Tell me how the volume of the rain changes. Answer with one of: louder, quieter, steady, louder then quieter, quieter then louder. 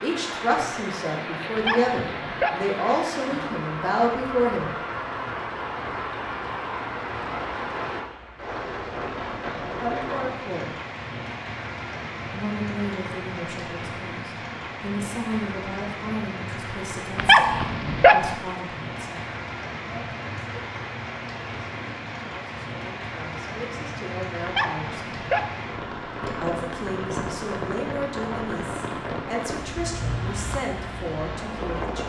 steady.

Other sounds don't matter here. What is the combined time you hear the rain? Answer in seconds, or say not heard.
32 s.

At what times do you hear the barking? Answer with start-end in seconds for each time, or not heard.
1.6-2.8, 17.1-18.4, 24.4-25.6.